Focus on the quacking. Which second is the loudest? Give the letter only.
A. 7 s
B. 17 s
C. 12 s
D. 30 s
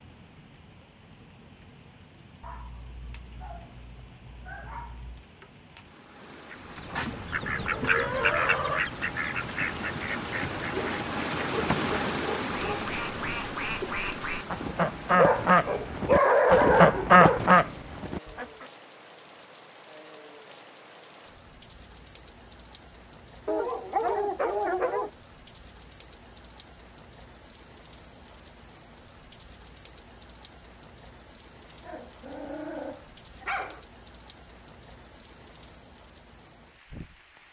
B.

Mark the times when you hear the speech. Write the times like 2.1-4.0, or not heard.
not heard.